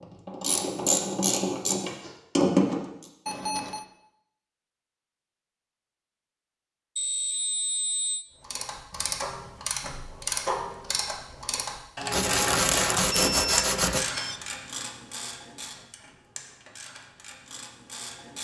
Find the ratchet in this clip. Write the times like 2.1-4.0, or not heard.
0.0-3.0, 8.4-18.3.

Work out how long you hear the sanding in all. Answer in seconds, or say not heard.
2 s.